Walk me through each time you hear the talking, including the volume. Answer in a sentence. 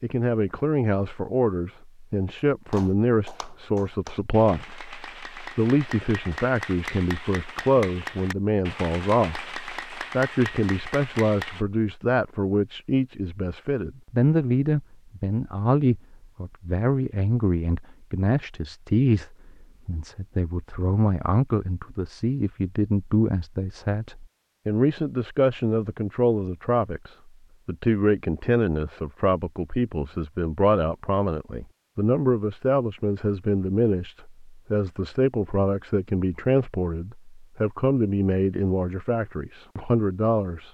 The talking can be heard from 0.0 to 40.6 s, at a steady volume.